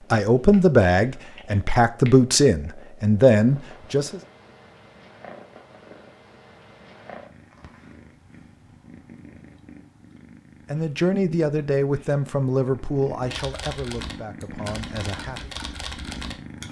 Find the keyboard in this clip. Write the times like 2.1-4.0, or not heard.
13.2-16.6.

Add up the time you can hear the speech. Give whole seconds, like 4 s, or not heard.
9 s.